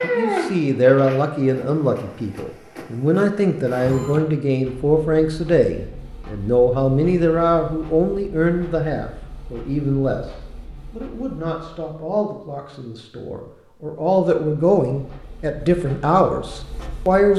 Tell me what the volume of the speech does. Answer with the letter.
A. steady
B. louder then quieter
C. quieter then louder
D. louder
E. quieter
C.